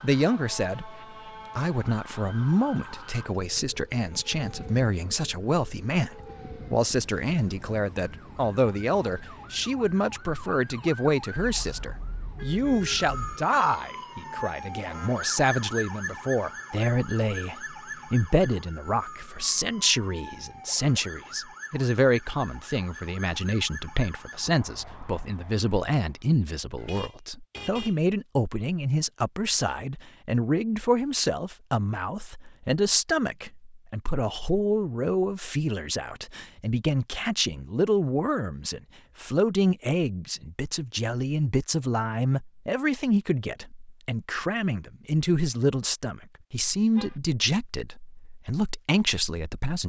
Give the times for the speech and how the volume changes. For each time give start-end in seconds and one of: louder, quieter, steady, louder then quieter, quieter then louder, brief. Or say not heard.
0.0-49.8 steady.